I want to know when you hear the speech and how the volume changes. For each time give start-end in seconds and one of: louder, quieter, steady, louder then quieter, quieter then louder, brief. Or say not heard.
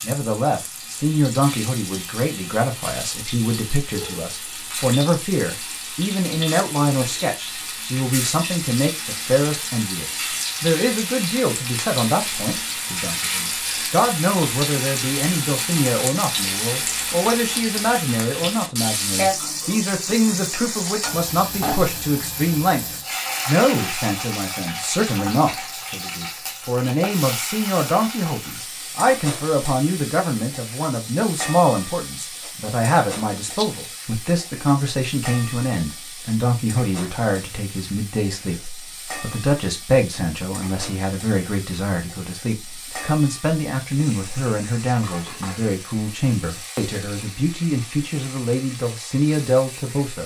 0.0-50.2 steady.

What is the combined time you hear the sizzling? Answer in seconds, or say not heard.
50 s.